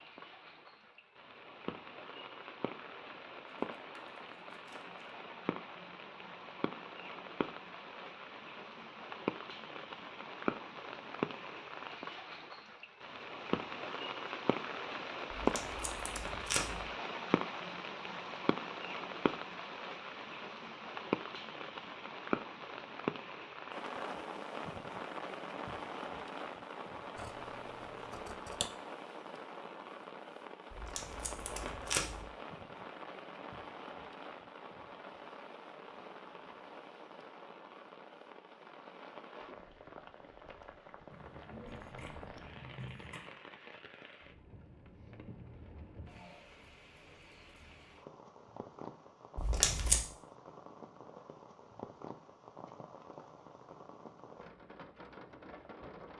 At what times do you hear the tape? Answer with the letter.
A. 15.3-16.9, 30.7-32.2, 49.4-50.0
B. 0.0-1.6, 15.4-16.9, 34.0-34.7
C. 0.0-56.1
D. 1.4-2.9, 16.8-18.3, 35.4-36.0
A.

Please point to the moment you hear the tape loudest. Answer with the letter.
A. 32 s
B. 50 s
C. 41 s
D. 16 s
B.